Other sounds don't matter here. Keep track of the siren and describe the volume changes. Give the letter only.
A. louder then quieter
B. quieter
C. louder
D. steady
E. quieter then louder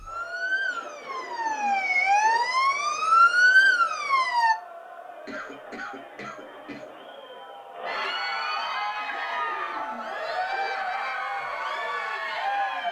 C.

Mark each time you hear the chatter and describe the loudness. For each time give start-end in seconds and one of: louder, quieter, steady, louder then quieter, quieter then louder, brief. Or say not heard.
0.0-12.8 louder.